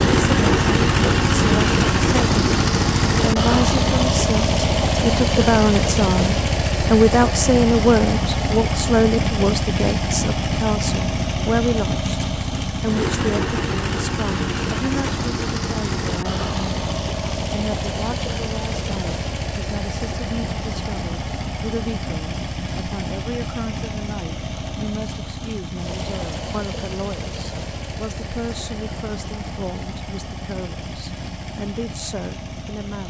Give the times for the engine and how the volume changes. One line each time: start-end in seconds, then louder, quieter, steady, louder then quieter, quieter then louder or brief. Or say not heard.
0.0-33.0 quieter.